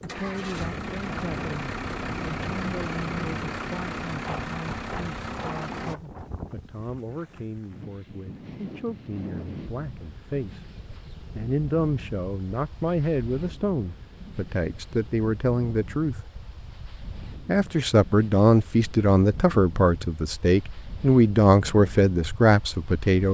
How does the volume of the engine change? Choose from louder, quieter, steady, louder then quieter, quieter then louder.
steady.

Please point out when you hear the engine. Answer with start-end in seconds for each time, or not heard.
0.0-6.0.